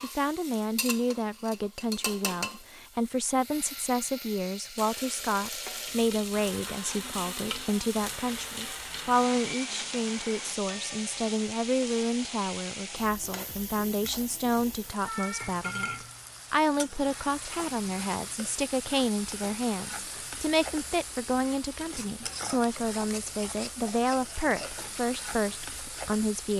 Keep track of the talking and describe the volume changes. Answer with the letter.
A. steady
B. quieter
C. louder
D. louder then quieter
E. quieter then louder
A.